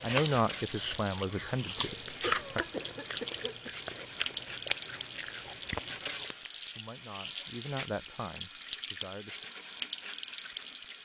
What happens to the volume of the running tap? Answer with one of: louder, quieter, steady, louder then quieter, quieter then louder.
steady.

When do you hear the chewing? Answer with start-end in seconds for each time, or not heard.
0.0-6.5.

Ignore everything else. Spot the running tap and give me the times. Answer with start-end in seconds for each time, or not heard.
0.0-11.0.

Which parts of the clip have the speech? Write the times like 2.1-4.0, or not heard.
0.0-2.6, 6.8-9.4.